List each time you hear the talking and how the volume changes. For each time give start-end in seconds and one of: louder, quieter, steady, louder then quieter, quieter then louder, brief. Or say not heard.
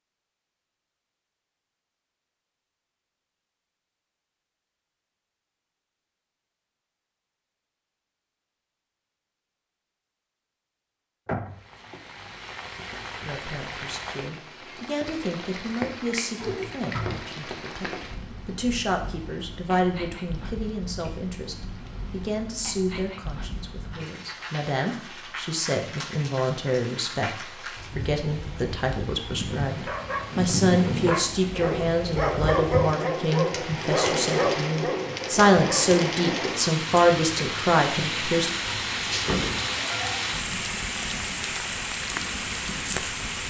13.2-38.5 louder.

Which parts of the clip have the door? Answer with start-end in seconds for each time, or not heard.
11.2-12.0, 16.4-17.3, 38.4-39.8.